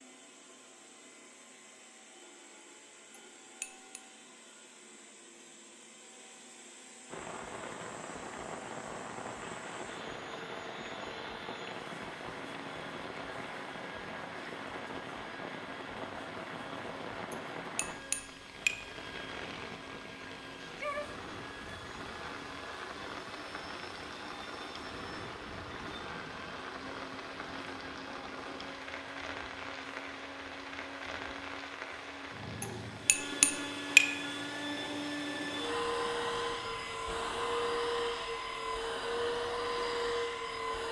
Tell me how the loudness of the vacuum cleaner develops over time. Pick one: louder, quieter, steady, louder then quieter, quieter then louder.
louder.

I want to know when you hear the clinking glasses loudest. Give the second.
34 s.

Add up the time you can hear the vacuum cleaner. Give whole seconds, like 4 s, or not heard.
41 s.